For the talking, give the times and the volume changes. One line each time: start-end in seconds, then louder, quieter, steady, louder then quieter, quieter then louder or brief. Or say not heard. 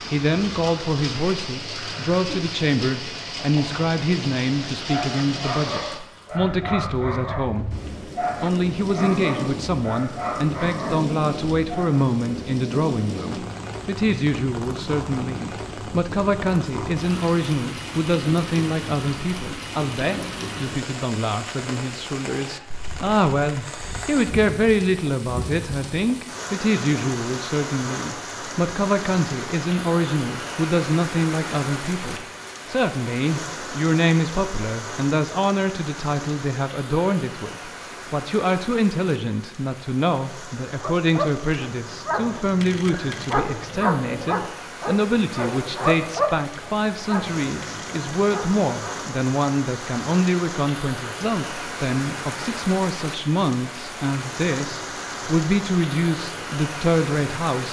0.1-57.6 steady.